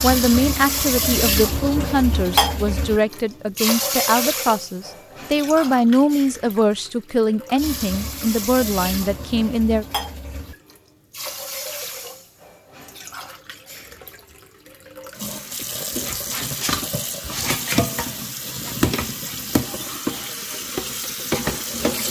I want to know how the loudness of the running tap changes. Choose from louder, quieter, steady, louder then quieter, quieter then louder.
quieter then louder.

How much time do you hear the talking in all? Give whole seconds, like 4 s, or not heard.
10 s.